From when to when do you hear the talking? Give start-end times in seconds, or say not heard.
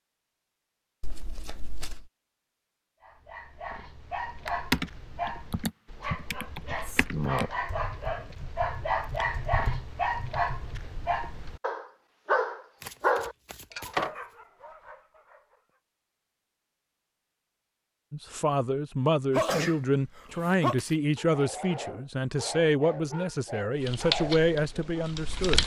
18.1-25.6.